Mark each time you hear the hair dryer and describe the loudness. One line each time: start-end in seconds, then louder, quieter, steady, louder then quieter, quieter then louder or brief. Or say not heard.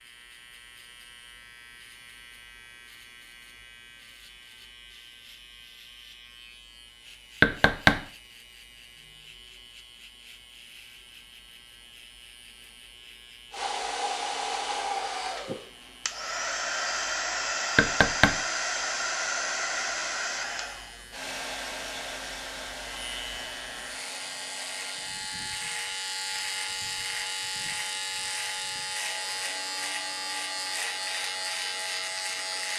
13.5-32.7 quieter.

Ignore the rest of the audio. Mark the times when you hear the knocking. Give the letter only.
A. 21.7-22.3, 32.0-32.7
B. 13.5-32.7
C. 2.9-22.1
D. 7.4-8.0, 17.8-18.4
D.